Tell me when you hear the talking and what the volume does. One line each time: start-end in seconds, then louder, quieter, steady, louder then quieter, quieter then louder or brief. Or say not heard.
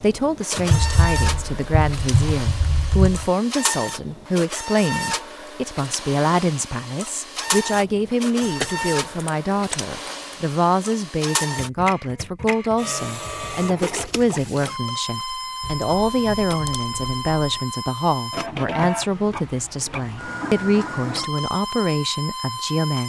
0.0-23.0 steady.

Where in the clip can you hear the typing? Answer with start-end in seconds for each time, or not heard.
0.7-3.3, 8.4-10.3, 15.6-17.6.